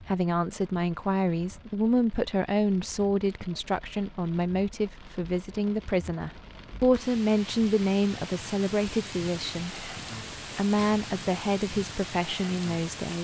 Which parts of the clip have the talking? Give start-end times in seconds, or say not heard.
0.1-9.8, 10.6-13.1.